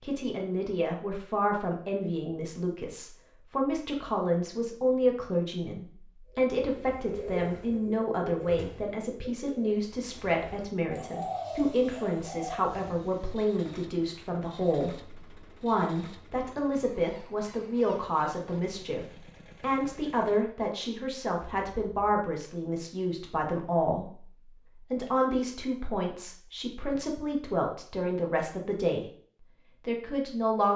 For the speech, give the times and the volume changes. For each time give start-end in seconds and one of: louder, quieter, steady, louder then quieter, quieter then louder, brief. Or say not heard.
0.0-29.1 steady
29.9-30.7 brief.